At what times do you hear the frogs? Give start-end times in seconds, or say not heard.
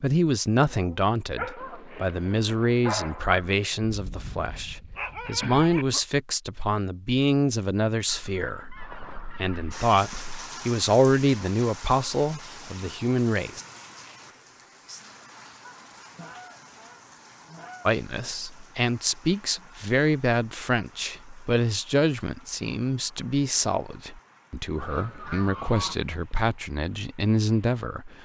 not heard.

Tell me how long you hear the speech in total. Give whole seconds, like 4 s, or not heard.
24 s.